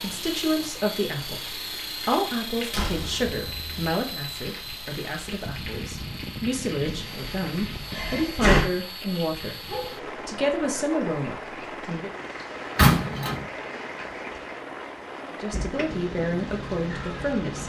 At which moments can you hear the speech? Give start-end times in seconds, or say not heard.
0.0-12.1, 15.3-17.6.